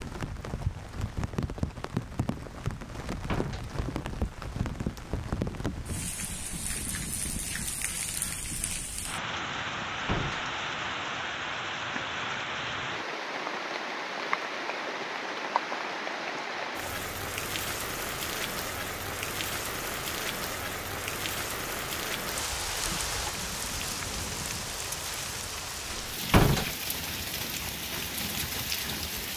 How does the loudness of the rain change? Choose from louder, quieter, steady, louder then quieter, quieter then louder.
steady.